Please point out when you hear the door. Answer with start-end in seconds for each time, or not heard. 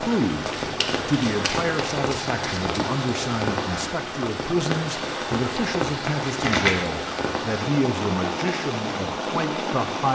not heard.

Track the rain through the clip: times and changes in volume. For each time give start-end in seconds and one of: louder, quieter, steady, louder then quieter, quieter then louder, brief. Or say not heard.
0.0-10.0 steady.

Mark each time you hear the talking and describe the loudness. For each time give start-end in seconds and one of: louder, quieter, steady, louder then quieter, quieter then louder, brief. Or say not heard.
0.0-10.0 steady.